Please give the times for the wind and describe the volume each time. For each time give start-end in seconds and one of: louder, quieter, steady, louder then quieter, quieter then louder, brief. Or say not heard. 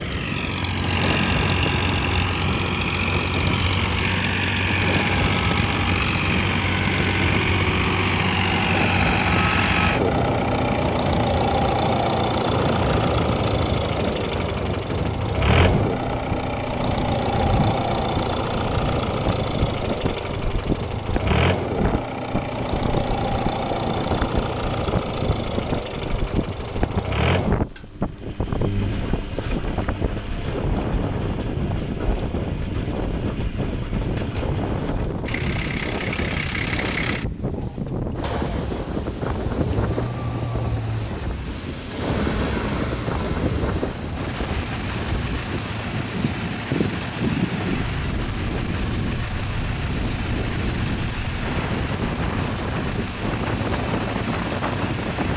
0.0-55.3 steady.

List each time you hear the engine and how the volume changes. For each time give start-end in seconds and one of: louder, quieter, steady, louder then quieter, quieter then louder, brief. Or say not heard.
0.0-55.3 quieter.